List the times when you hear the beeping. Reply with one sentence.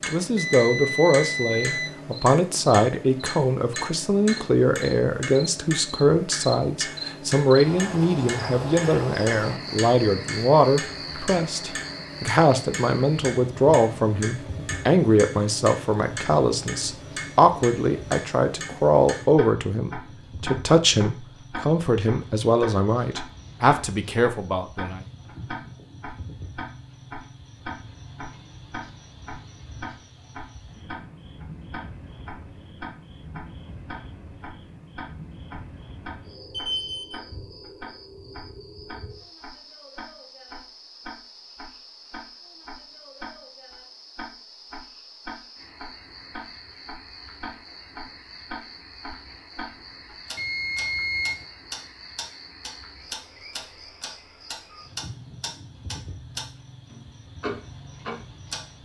The beeping can be heard from 0.3 to 2.0 s, from 36.5 to 37.2 s and from 50.4 to 51.5 s.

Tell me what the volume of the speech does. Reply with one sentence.
The volume of the speech stays about the same.